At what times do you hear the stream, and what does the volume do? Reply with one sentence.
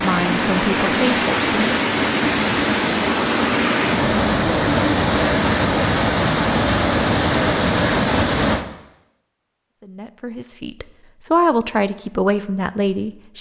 The stream can be heard from 0.0 to 8.7 s, at a steady volume.